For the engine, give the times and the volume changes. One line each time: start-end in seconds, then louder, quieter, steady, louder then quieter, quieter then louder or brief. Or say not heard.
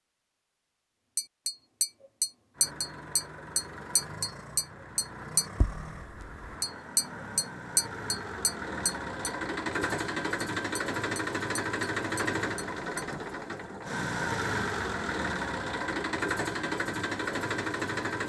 2.5-18.2 louder.